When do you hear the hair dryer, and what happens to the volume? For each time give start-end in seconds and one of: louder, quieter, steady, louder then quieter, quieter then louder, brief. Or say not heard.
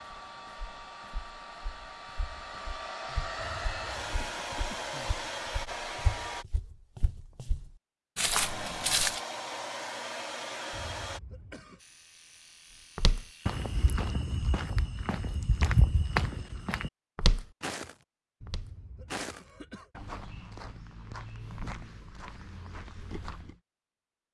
0.0-6.5 louder
8.3-11.2 brief.